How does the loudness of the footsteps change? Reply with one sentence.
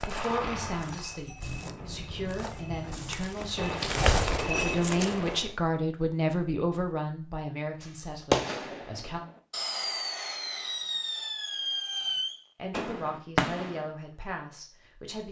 The loudness of the footsteps goes up.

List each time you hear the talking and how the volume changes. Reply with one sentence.
You can hear the talking from 0.0 to 9.2 s, getting louder then quieter; and briefly from 12.6 to 15.2 s.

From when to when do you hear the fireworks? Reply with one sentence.
You can hear the fireworks from 0.0 to 5.5 s and from 7.8 to 13.9 s.